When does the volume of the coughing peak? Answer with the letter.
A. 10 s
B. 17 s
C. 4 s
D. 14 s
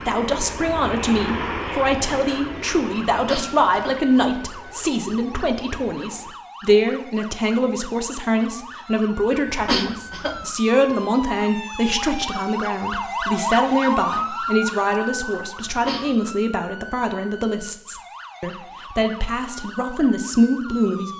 A.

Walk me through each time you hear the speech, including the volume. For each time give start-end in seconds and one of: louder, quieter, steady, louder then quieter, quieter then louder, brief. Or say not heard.
0.1-21.1 steady.